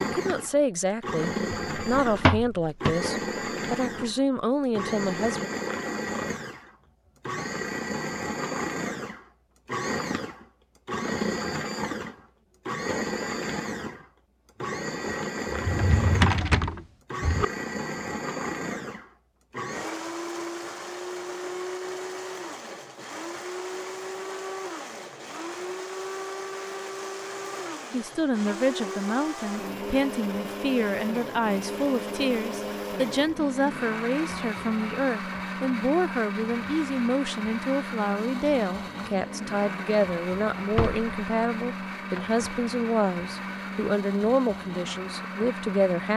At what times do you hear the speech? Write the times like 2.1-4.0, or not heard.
0.0-5.5, 27.9-46.1.